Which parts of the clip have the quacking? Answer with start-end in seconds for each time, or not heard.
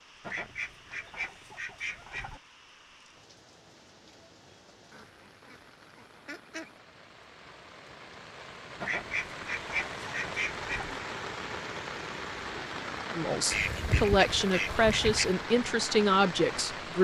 0.2-2.4, 4.9-6.8, 8.8-11.1, 13.5-15.3.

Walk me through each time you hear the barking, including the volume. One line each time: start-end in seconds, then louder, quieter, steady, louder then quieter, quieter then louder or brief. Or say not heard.
not heard.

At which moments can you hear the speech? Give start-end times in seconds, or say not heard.
13.1-16.9.